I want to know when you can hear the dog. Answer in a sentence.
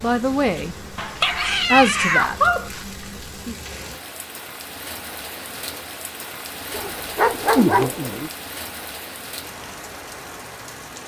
The dog can be heard from 0.9 to 2.7 s and from 6.7 to 8.3 s.